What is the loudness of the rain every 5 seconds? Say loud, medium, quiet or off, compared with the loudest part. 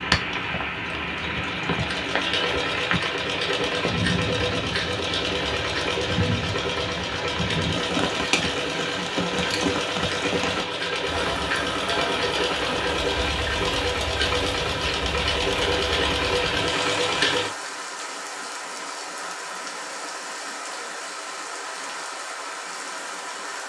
loud, loud, loud, medium, medium.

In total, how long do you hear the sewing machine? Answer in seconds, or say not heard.
17 s.